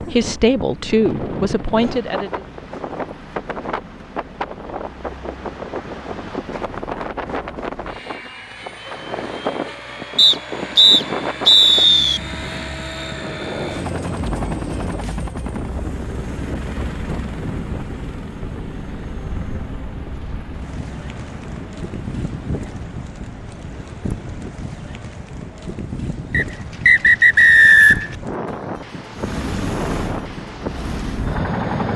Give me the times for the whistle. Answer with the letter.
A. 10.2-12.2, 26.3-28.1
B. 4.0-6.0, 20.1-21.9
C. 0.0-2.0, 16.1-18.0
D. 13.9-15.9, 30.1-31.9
A.